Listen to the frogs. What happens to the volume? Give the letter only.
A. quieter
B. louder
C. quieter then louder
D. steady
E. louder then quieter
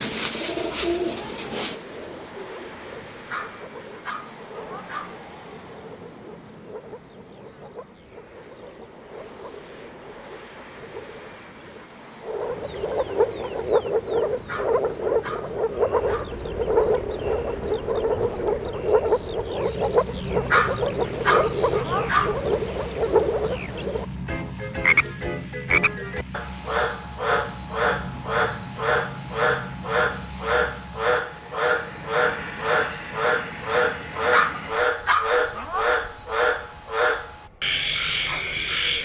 B.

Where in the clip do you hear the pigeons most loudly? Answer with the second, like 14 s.
1 s.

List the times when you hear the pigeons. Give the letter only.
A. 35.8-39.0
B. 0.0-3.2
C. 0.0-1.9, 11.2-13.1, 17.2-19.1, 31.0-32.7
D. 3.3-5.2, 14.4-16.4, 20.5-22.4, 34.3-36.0
B.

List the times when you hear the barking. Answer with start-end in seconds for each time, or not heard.
3.3-5.2, 14.4-16.4, 20.5-22.4, 34.3-36.0.